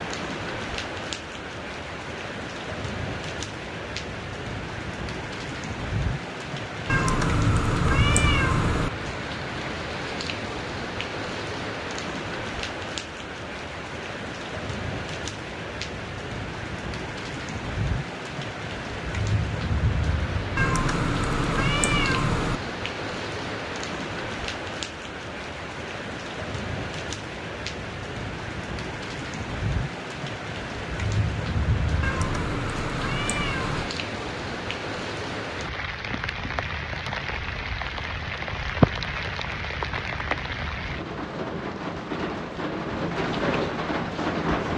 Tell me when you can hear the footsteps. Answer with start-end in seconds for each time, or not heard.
not heard.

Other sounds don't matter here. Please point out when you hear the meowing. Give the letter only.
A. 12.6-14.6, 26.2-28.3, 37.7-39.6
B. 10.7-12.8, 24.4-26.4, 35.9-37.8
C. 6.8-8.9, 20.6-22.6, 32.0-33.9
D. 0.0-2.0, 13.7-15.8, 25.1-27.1
C.